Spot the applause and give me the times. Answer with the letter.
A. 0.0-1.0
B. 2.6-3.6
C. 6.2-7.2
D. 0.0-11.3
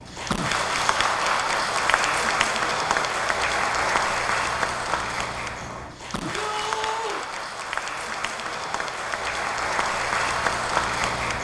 D.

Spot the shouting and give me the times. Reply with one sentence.
The shouting can be heard from 6.2 to 7.2 s.